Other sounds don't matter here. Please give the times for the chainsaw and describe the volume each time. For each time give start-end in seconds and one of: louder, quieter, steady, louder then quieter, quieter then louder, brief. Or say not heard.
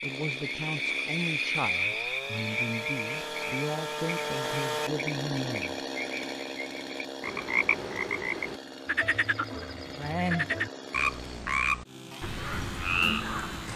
0.0-13.7 louder then quieter.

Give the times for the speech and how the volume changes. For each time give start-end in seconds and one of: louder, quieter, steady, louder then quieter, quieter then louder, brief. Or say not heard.
0.0-5.8 steady.